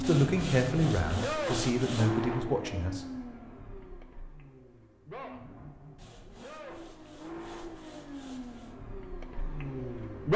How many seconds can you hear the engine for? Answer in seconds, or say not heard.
10 s.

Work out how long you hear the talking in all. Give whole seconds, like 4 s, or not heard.
3 s.